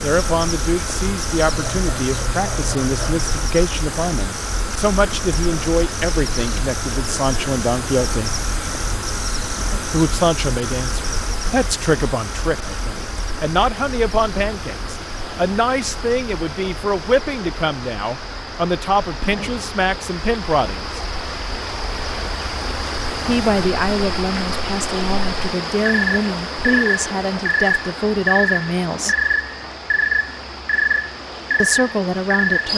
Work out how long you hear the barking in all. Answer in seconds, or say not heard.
2 s.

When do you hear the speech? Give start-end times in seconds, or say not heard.
0.0-8.3, 9.9-21.0, 23.2-29.1, 31.6-32.7.